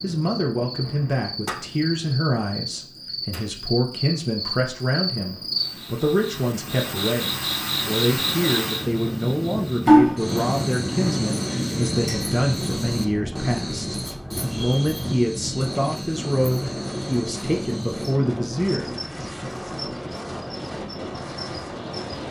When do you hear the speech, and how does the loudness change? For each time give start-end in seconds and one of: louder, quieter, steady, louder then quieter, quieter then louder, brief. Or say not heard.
0.0-18.9 steady.